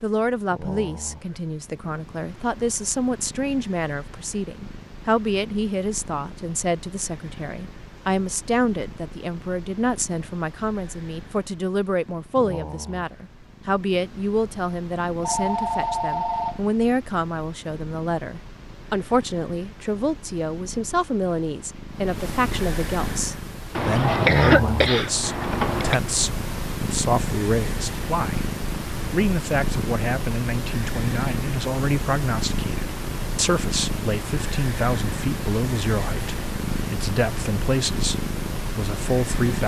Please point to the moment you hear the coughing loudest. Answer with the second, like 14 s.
24 s.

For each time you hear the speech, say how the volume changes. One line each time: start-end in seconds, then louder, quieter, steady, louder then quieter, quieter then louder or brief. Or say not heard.
0.0-39.6 steady.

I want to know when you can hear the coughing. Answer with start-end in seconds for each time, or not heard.
23.8-25.9.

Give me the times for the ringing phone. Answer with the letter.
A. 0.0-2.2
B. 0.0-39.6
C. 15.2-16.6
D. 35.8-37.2
C.